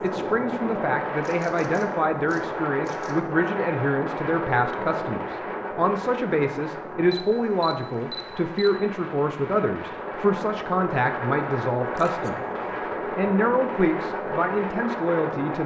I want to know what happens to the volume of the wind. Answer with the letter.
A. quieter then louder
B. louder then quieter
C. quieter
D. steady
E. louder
A.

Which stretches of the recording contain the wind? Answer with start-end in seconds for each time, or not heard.
0.0-15.6.